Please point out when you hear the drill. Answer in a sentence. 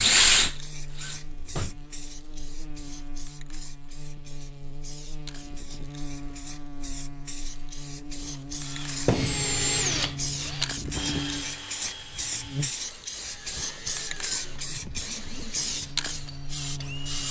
You can hear the drill from 0.0 to 1.7 s and from 8.6 to 17.2 s.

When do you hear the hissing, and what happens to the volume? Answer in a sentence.
The hissing can be heard from 0.2 to 17.2 s, getting louder.